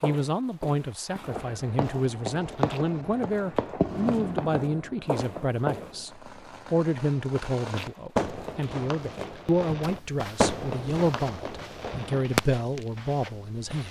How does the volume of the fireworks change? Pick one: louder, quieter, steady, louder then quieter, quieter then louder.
quieter then louder.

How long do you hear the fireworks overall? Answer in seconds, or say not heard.
12 s.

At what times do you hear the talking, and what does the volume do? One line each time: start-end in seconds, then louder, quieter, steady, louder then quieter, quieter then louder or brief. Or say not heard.
0.0-13.8 steady.